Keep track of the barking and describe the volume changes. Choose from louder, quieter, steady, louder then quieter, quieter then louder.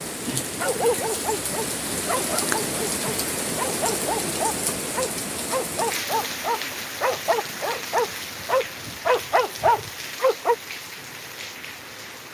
louder.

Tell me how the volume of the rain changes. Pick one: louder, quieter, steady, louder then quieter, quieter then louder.
quieter.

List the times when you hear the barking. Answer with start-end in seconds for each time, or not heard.
0.6-10.6.